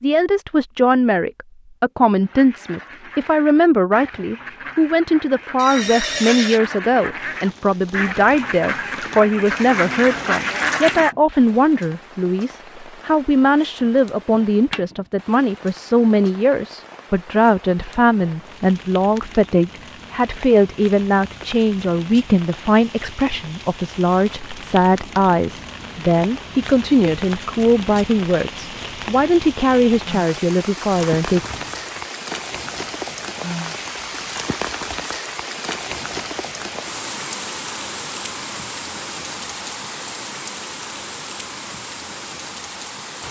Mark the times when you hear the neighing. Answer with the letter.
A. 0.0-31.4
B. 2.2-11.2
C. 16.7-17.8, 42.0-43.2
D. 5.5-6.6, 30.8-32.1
D.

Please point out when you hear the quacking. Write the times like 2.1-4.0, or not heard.
2.2-11.2.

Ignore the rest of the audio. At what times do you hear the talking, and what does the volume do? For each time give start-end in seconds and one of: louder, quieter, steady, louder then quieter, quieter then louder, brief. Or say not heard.
0.0-31.4 steady.